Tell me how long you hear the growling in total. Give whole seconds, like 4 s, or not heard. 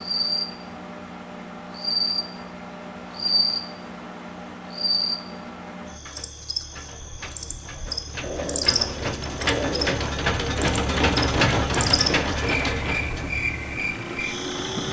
2 s.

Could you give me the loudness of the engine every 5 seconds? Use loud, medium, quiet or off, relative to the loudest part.
quiet, medium, loud.